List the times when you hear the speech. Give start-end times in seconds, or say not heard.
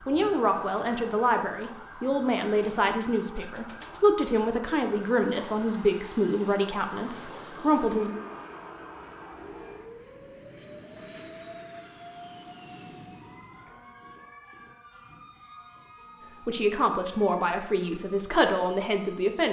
0.1-8.1, 16.4-19.4.